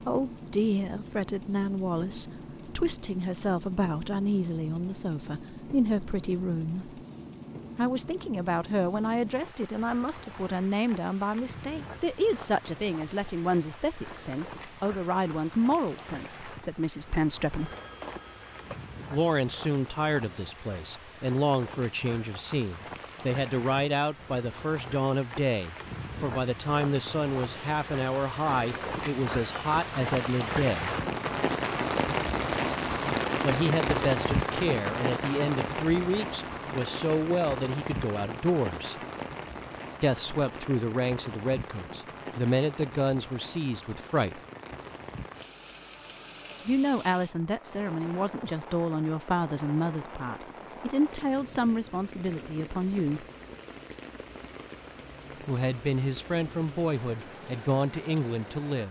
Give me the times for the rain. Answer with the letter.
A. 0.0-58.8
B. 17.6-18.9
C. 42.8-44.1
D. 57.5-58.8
A.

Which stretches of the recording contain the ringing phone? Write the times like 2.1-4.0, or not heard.
17.6-18.9.